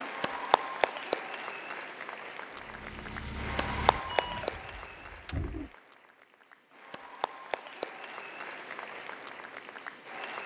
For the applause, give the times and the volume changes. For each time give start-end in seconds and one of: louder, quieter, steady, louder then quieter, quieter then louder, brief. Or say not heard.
0.0-10.4 quieter.